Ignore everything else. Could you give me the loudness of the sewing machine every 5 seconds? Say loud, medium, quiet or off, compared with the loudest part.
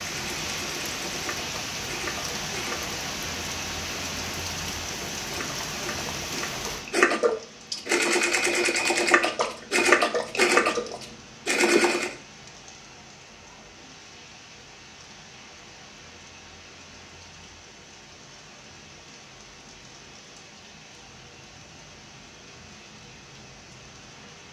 quiet, loud, loud, off, off.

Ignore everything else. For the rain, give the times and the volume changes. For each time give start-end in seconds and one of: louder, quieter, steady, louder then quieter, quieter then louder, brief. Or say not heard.
0.0-24.4 quieter.